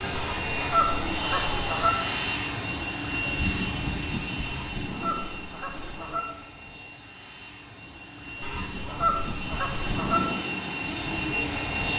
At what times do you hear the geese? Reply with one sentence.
The geese can be heard from 0.1 to 1.9 s, from 4.5 to 6.2 s and from 8.4 to 10.2 s.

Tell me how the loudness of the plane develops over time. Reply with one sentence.
The volume of the plane goes down, then up.